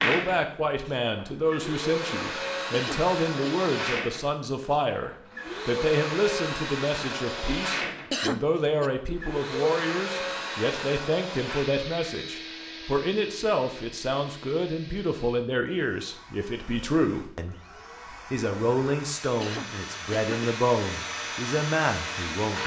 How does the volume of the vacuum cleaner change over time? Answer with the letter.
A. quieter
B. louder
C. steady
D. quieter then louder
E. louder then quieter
D.